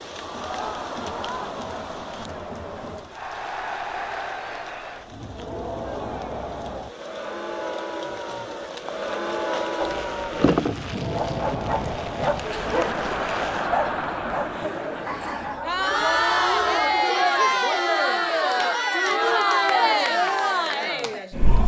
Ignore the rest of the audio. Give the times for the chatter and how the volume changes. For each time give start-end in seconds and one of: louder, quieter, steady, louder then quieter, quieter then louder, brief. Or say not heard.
0.0-21.6 louder.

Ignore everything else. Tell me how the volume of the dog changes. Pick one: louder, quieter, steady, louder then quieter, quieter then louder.
quieter.